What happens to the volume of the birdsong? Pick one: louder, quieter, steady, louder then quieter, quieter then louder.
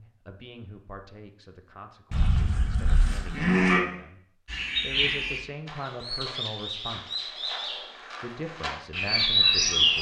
quieter then louder.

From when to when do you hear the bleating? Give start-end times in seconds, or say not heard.
2.1-3.9.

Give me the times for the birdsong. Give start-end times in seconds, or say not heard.
4.5-9.9.